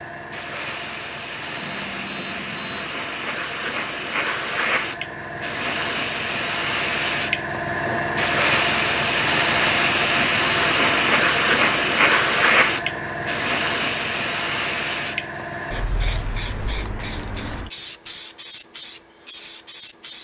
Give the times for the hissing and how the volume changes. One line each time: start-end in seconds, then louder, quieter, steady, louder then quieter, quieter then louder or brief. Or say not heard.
0.0-20.2 louder then quieter.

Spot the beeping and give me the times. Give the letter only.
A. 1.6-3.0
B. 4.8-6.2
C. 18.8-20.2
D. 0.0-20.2
A.